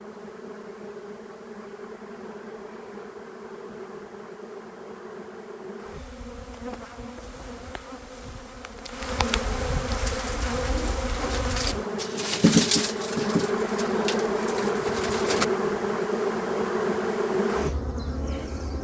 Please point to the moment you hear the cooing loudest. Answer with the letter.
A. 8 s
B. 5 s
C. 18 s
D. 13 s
D.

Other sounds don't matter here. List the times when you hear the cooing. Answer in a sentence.
The cooing can be heard from 9.9 to 15.4 s.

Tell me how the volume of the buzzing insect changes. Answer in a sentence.
The loudness of the buzzing insect goes up.